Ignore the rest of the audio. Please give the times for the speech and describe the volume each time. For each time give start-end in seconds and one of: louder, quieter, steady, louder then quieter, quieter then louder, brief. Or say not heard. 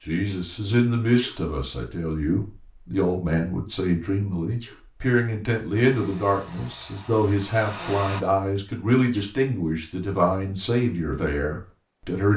0.1-12.3 steady.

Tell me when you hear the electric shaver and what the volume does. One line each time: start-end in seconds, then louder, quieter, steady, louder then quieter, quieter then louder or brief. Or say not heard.
not heard.